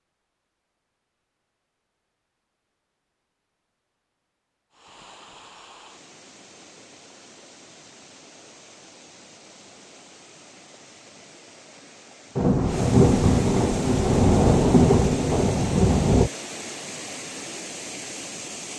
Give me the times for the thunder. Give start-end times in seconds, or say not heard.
12.3-16.3.